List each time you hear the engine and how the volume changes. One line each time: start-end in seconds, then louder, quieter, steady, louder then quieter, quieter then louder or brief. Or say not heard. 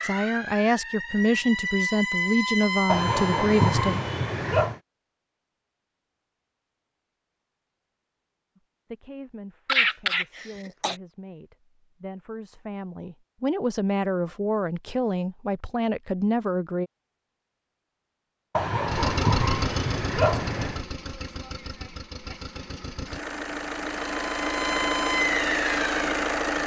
18.9-26.6 quieter then louder.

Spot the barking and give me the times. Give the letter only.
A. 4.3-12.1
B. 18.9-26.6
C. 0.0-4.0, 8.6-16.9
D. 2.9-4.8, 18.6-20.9
D.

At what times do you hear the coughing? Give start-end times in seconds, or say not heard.
9.7-10.9.